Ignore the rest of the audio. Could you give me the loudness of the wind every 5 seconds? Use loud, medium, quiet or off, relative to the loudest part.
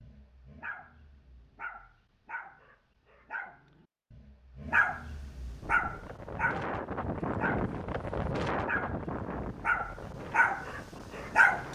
off, loud, medium.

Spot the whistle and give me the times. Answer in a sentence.
The whistle can't be heard in this clip.